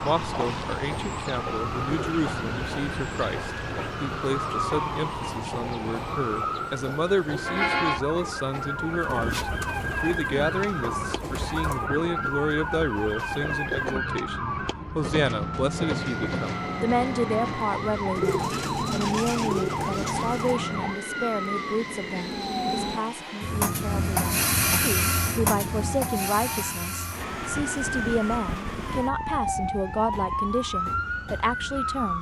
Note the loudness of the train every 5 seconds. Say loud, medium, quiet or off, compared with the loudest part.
medium, medium, medium, medium, loud, loud, quiet.